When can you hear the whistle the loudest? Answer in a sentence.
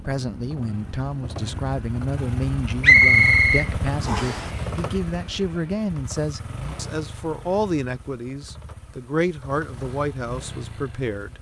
The volume of the whistle peaks at 3 seconds.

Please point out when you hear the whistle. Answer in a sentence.
You can hear the whistle from 2.8 to 4.5 s.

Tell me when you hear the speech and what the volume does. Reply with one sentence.
The speech can be heard from 0.0 to 11.3 s, at a steady volume.